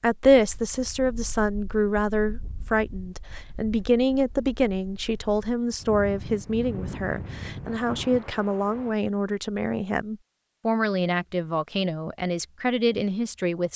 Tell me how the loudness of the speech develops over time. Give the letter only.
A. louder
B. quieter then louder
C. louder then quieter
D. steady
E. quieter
D.